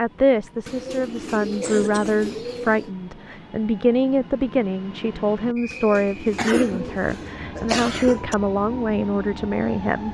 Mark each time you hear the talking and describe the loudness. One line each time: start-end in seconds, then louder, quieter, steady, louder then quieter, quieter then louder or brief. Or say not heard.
0.0-10.0 steady.